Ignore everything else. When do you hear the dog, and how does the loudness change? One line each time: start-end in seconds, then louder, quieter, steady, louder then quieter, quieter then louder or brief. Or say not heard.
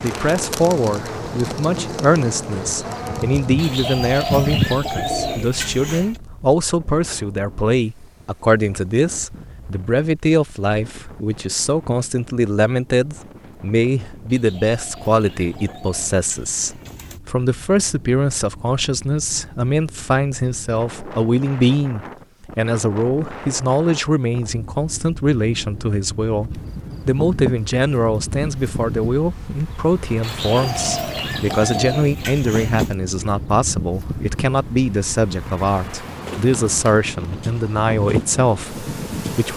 not heard.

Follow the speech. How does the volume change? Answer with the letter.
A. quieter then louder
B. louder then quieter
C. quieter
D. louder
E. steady
E.